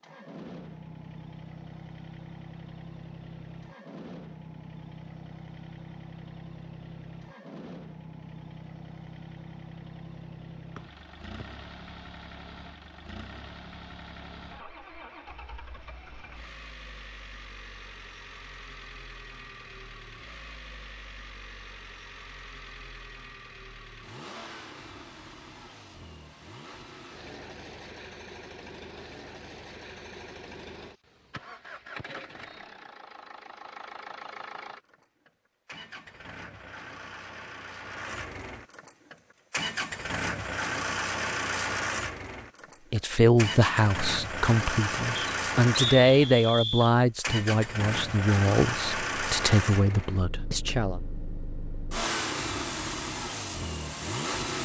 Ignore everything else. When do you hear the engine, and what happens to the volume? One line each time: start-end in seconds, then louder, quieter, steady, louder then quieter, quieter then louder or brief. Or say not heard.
0.0-54.6 louder.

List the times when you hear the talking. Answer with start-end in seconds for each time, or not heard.
42.9-51.0.